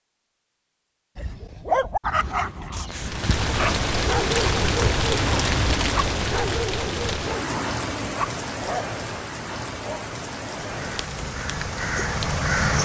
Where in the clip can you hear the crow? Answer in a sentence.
You can hear the crow from 10.6 to 12.8 s.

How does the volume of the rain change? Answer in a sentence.
The volume of the rain goes down.